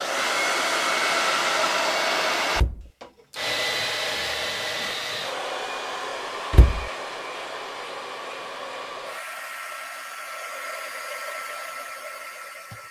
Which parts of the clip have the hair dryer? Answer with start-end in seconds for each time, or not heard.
0.0-12.8.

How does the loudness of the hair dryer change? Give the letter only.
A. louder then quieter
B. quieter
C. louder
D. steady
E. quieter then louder
B.